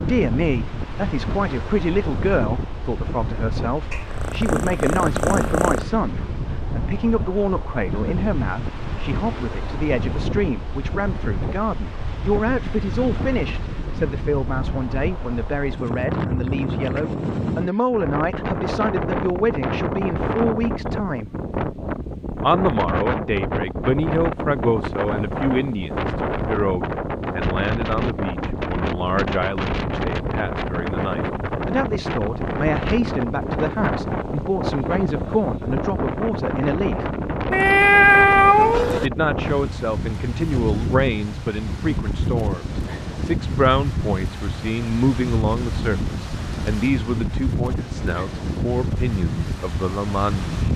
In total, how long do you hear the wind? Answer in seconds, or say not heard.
51 s.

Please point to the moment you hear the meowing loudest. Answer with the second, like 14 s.
38 s.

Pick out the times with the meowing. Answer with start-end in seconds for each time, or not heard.
3.9-5.8, 37.5-39.1.